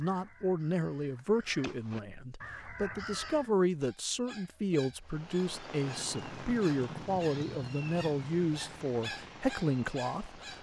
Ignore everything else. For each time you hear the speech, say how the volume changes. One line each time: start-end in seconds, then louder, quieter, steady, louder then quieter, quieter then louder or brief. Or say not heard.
0.0-10.4 steady.